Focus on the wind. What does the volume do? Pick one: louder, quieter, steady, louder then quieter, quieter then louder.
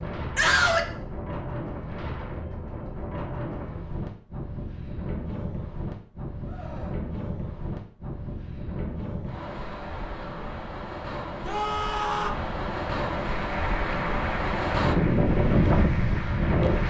louder.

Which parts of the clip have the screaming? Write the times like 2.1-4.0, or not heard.
0.3-0.8, 6.5-7.0, 11.4-12.3.